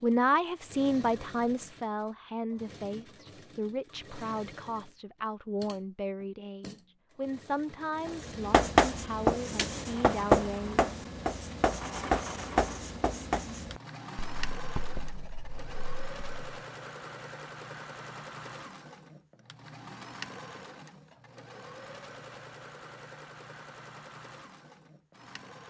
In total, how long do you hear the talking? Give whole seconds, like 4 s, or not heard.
11 s.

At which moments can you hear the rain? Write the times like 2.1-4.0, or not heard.
not heard.